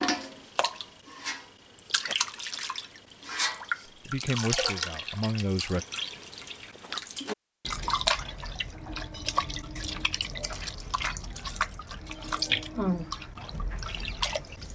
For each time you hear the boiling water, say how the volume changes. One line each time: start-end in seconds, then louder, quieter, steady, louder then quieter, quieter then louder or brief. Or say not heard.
not heard.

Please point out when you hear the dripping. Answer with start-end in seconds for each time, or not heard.
0.0-14.7.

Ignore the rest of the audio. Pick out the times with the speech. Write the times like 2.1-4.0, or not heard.
4.0-5.8.